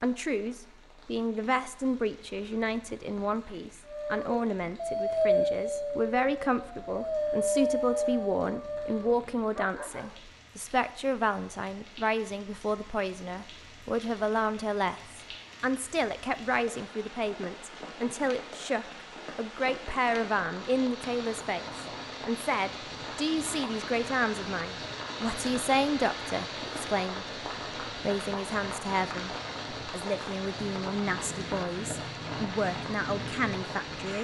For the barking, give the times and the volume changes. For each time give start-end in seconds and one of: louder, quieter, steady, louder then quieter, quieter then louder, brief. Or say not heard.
3.9-10.2 quieter.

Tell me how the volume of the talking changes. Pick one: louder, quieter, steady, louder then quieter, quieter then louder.
steady.